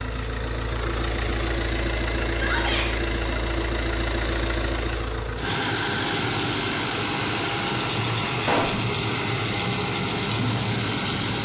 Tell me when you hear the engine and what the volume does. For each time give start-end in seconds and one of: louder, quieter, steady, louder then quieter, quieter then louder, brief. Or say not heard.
0.0-11.4 steady.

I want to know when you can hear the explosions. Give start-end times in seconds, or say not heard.
8.4-8.8.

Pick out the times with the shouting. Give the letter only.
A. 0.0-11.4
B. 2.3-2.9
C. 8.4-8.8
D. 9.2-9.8
B.